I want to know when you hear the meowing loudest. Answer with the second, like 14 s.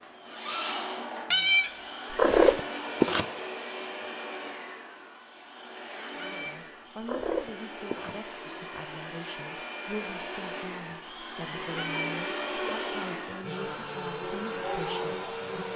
2 s.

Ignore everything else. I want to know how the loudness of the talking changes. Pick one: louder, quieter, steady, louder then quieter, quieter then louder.
steady.